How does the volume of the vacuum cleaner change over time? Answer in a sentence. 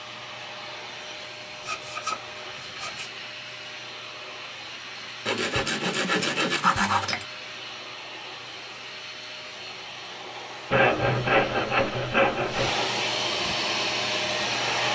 The volume of the vacuum cleaner goes up.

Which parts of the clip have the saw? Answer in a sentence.
You can hear the saw from 1.6 to 3.1 s, from 5.2 to 7.2 s and from 10.7 to 12.7 s.